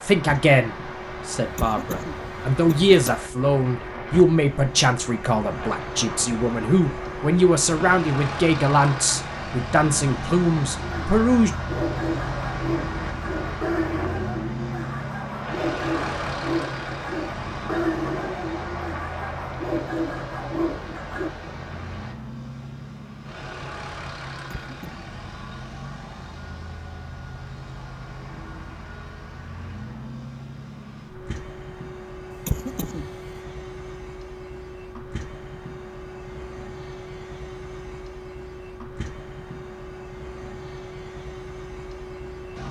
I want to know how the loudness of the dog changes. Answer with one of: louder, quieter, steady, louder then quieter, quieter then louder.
steady.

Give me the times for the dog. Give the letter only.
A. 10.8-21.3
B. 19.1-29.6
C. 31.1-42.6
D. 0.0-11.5
A.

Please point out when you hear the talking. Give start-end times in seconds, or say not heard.
0.0-11.5.